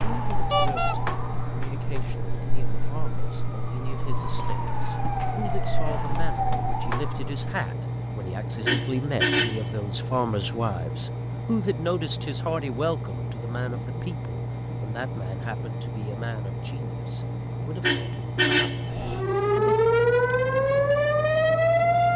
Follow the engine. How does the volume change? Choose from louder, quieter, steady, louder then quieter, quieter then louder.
steady.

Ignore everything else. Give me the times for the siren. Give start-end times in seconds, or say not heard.
0.0-7.5, 18.9-22.1.